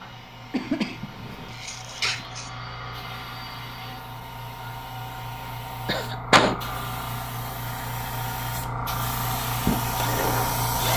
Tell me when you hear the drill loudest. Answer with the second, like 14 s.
10 s.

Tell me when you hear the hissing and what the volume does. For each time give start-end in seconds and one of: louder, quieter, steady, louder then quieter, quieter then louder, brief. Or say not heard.
0.0-10.9 louder.